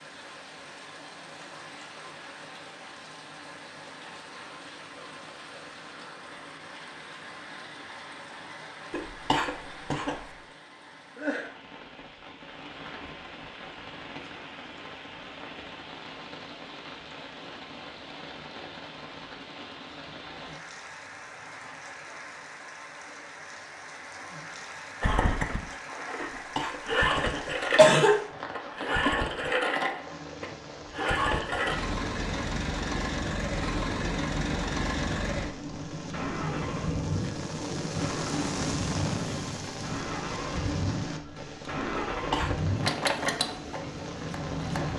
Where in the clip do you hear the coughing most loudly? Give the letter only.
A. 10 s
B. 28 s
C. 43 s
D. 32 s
B.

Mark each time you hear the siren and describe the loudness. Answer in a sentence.
You can't hear the siren here.